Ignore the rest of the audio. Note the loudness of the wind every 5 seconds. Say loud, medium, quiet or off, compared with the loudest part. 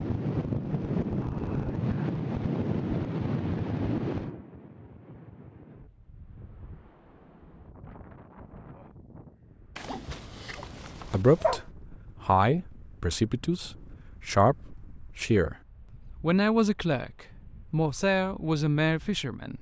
loud, quiet, quiet, quiet.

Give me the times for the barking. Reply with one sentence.
The barking can be heard from 9.8 to 11.7 s.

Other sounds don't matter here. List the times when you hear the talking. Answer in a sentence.
You can hear the talking from 11.1 to 15.6 s and from 16.2 to 19.5 s.